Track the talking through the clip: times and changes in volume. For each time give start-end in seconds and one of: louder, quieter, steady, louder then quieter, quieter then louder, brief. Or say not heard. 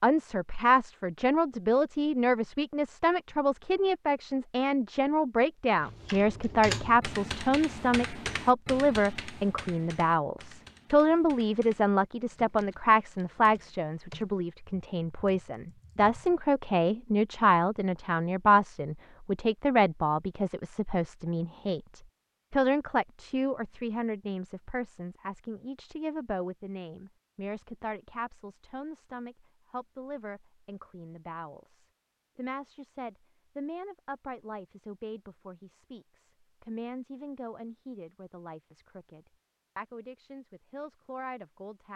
0.0-41.9 quieter.